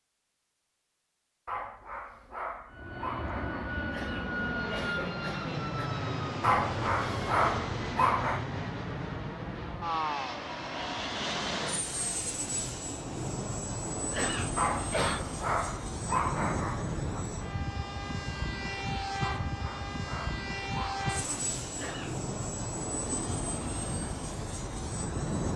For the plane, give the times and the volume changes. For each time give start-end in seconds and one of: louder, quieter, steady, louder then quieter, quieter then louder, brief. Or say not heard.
2.7-25.5 steady.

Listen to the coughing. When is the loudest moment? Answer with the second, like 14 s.
15 s.